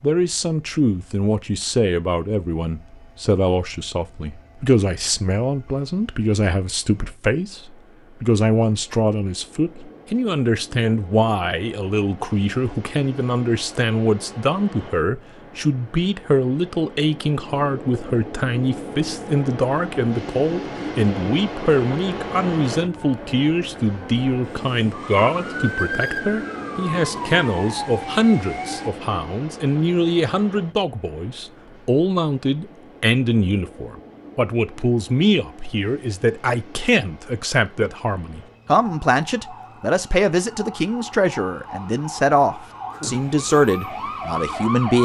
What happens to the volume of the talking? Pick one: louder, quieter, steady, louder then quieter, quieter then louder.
steady.